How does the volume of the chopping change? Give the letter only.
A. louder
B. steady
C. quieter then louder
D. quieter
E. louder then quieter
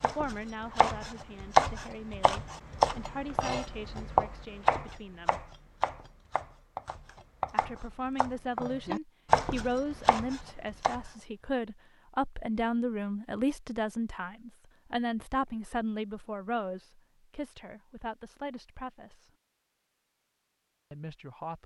C.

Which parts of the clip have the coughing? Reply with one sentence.
The coughing can't be heard in this clip.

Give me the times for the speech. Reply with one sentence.
The speech can be heard from 0.0 to 5.4 s, from 7.5 to 19.3 s and from 20.9 to 21.6 s.